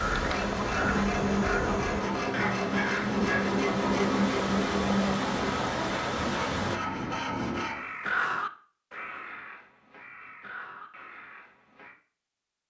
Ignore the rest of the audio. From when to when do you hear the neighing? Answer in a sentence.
You can't hear the neighing here.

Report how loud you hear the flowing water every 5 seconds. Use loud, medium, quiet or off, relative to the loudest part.
loud, loud, off.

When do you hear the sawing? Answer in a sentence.
You can hear the sawing from 0.1 to 7.8 s.